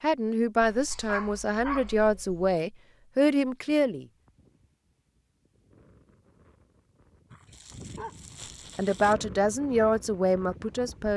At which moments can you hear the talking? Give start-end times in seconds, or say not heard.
0.0-4.0, 8.8-11.1.